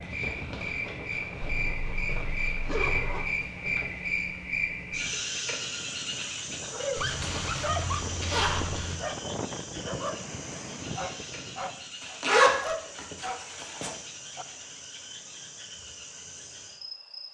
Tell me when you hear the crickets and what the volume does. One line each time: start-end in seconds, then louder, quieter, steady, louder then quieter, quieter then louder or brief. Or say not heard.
0.0-17.2 quieter.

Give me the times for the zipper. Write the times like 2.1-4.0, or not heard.
1.4-3.2, 7.0-9.0, 12.0-13.9.